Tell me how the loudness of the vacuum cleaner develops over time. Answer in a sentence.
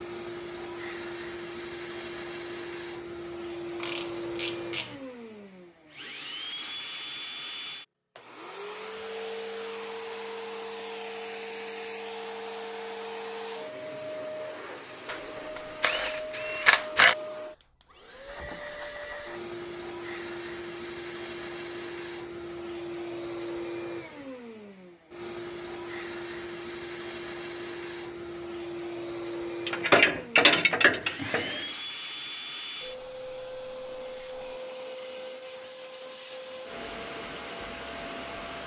The loudness of the vacuum cleaner stays about the same.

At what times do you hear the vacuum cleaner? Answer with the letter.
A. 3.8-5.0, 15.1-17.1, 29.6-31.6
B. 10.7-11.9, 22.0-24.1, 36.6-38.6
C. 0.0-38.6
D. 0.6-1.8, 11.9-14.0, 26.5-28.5
C.